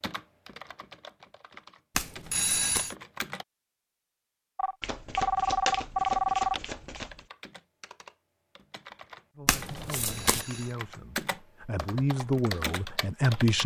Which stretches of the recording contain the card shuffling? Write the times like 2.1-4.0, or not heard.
1.9-2.9, 4.8-7.2, 9.4-10.4.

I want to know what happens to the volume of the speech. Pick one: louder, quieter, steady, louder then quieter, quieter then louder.
louder then quieter.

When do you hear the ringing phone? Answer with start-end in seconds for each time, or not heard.
2.3-3.0, 4.5-6.6, 9.9-10.8.